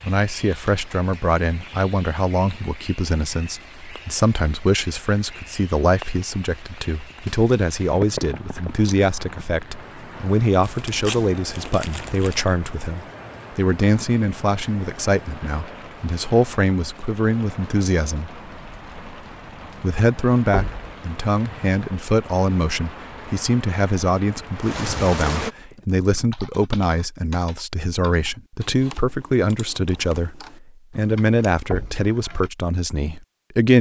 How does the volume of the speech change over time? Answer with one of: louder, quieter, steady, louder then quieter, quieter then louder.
steady.